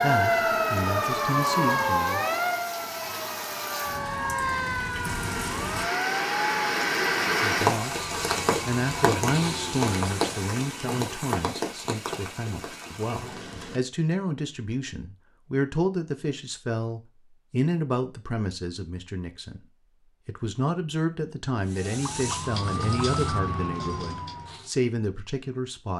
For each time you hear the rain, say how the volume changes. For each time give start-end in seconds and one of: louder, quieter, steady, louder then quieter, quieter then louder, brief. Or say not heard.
0.0-13.8 louder then quieter.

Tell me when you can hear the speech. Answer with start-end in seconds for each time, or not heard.
0.0-2.2, 7.3-19.6, 20.2-25.9.